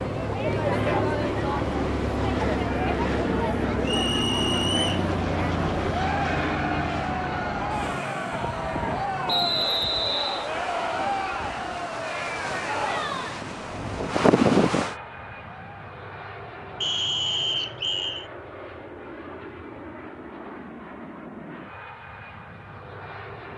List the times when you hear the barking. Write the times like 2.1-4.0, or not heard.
not heard.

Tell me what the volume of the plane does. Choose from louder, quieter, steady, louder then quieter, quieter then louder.
quieter.